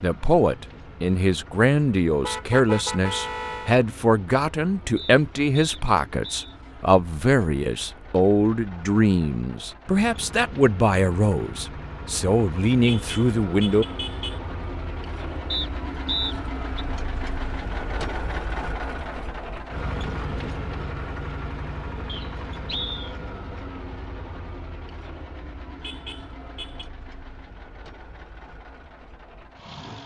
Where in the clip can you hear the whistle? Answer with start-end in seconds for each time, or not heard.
5.0-6.5, 15.5-16.9, 22.1-23.1.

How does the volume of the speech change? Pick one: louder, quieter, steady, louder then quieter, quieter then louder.
steady.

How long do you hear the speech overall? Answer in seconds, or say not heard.
14 s.